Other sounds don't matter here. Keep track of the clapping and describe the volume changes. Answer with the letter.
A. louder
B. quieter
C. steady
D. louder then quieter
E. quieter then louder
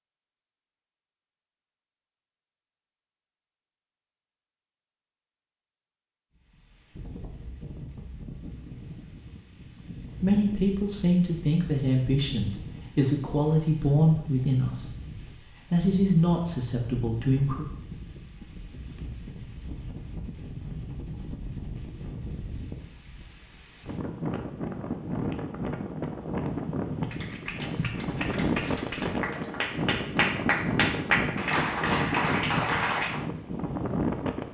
A.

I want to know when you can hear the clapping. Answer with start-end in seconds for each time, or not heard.
27.0-33.2.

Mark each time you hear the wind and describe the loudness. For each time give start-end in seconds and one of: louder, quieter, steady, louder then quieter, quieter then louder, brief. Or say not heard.
6.3-34.4 louder.